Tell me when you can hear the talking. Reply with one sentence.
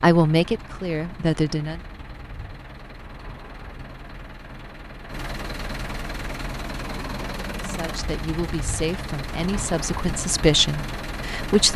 You can hear the talking from 0.0 to 1.8 s and from 7.5 to 11.7 s.